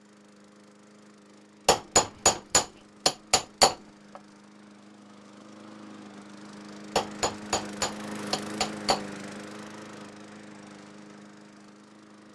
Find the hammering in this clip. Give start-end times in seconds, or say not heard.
1.6-3.8, 7.0-9.0.